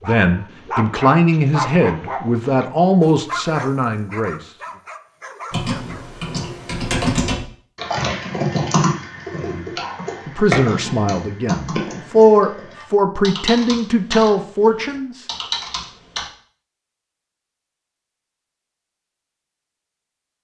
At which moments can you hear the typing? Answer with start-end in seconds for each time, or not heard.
5.5-16.3.